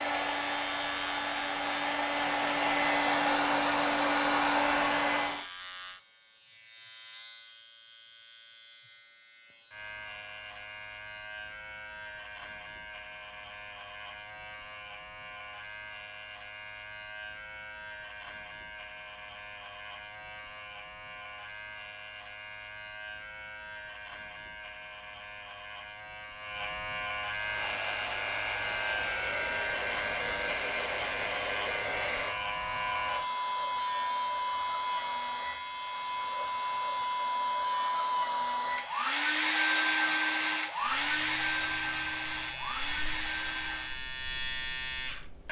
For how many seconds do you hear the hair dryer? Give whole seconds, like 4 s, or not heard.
22 s.